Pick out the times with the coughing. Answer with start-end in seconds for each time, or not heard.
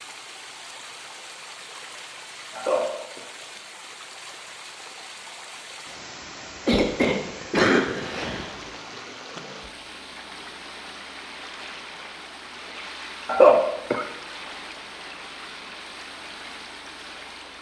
2.5-3.2, 6.7-8.7, 13.2-14.1.